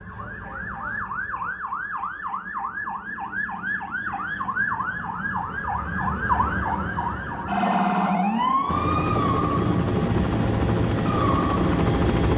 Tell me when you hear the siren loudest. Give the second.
8 s.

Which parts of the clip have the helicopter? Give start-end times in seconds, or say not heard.
8.7-12.3.